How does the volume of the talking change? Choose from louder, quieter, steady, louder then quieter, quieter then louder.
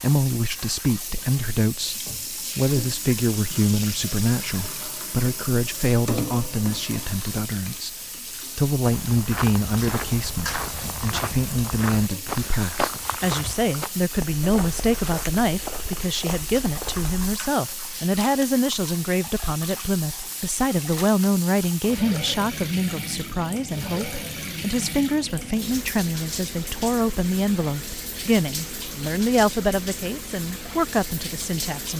steady.